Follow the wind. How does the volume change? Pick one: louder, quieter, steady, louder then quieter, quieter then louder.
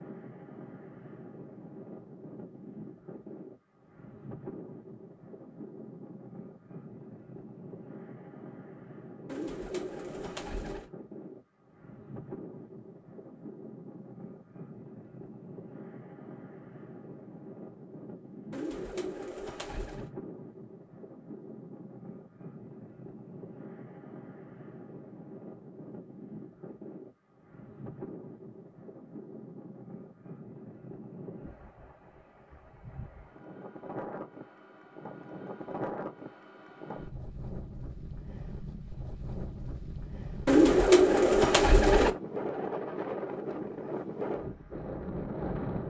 louder.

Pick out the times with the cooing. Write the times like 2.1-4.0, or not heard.
9.2-10.9, 18.5-20.1, 40.5-42.1.